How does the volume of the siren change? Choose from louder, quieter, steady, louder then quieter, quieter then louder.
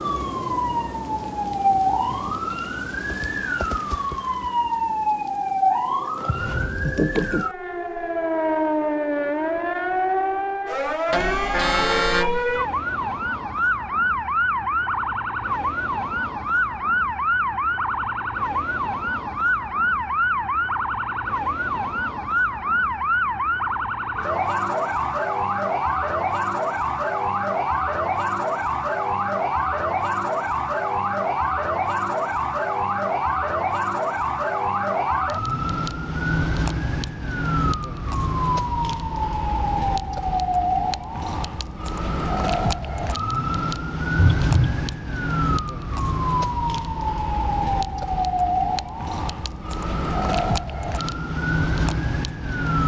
steady.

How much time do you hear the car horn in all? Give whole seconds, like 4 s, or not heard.
2 s.